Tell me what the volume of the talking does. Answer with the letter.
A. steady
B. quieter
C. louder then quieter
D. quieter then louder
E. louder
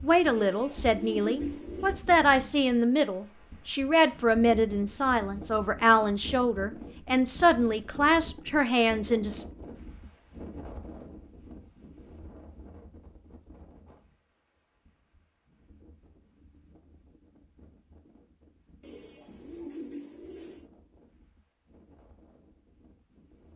A.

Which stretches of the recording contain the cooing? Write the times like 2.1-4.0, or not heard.
0.3-1.9, 18.8-20.7.